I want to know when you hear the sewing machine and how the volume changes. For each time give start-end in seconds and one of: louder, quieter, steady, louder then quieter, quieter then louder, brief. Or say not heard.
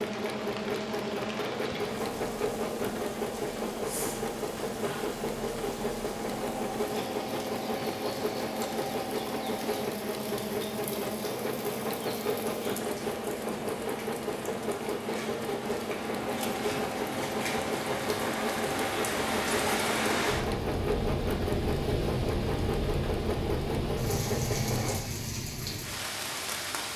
0.0-25.0 steady.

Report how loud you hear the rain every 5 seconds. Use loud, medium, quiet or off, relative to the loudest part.
medium, medium, medium, loud, loud, loud.